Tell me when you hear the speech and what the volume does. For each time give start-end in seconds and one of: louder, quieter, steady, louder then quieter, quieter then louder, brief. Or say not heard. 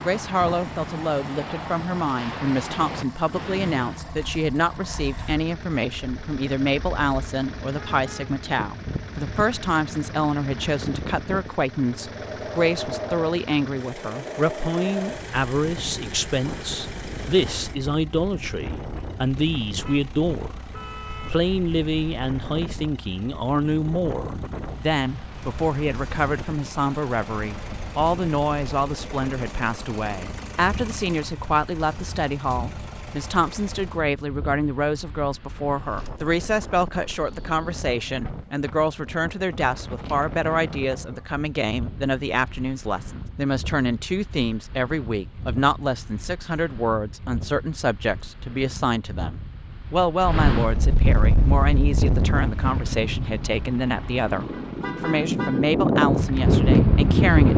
0.0-20.6 steady
21.2-57.5 steady.